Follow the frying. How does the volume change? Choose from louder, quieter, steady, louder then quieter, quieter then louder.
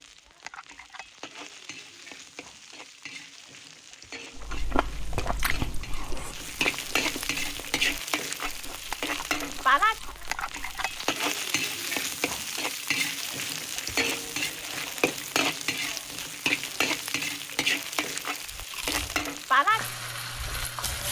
louder.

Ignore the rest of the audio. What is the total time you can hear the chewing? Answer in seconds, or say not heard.
9 s.